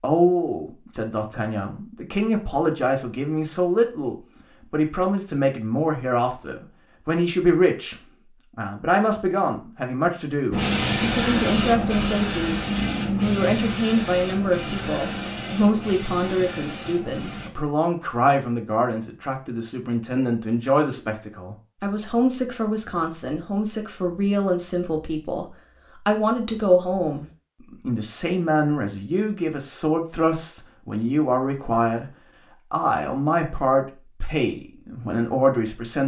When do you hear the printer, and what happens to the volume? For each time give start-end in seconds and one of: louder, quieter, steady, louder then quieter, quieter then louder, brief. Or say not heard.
10.5-17.5 quieter.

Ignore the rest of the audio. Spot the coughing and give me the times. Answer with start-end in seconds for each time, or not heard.
not heard.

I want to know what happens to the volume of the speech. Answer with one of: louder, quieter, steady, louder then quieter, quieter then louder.
steady.